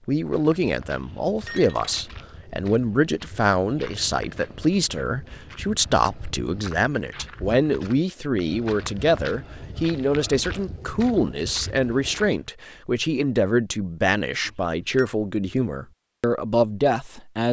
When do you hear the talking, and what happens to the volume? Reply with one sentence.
You can hear the talking from 0.1 to 17.4 s, at a steady volume.